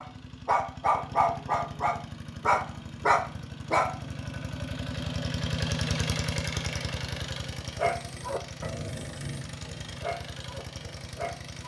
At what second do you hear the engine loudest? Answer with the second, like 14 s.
6 s.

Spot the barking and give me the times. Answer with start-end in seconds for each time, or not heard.
0.0-4.0, 7.8-11.6.